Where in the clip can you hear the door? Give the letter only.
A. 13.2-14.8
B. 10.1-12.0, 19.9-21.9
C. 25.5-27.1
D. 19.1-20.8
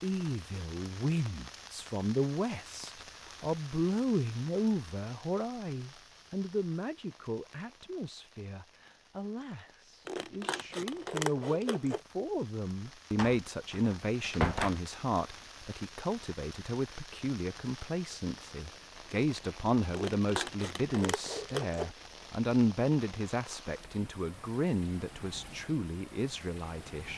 A.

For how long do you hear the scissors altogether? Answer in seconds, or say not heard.
4 s.